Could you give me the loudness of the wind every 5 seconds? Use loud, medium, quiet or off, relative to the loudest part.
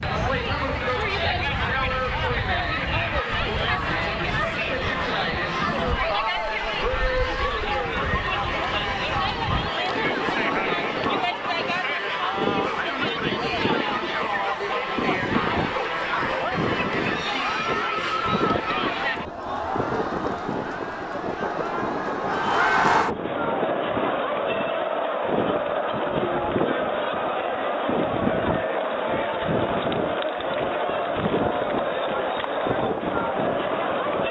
medium, medium, loud, loud, loud, loud, loud.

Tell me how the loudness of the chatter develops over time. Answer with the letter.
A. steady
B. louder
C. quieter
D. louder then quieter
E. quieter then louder
A.